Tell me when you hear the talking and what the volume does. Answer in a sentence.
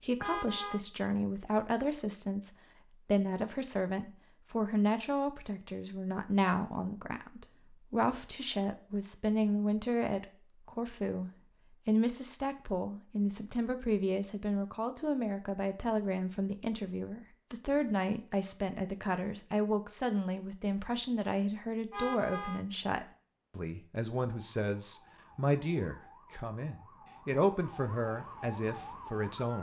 You can hear the talking from 0.0 to 29.5 s, at a steady volume.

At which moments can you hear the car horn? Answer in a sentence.
You can hear the car horn from 0.2 to 0.8 s and from 21.9 to 22.6 s.